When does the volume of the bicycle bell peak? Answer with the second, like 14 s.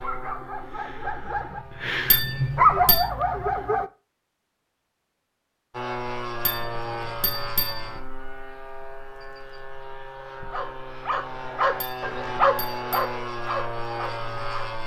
3 s.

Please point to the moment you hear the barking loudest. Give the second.
3 s.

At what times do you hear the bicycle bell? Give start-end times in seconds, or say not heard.
2.1-3.0, 6.5-7.8, 11.8-13.1.